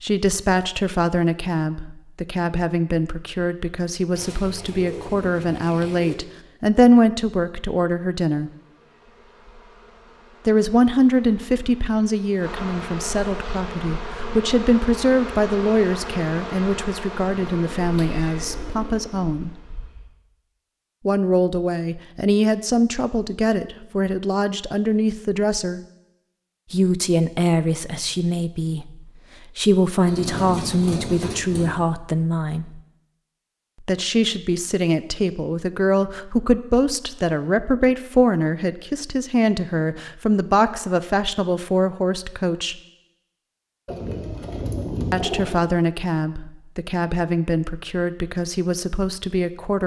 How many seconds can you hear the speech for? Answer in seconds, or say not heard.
42 s.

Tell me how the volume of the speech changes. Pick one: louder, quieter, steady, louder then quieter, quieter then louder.
steady.